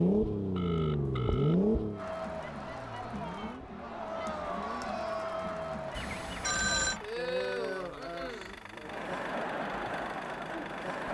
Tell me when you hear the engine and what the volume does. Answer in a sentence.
The engine can be heard from 0.0 to 11.0 s, getting quieter.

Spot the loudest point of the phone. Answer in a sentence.
The loudest moment of the phone is at 7 seconds.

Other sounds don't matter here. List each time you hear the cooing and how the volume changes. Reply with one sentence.
You can't hear the cooing here.